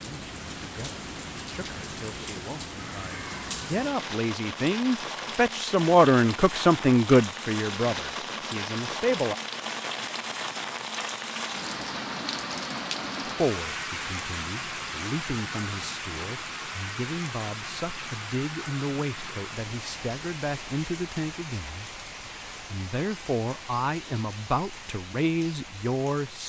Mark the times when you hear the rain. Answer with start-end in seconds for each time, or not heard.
0.0-26.4.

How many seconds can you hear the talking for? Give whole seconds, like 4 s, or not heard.
22 s.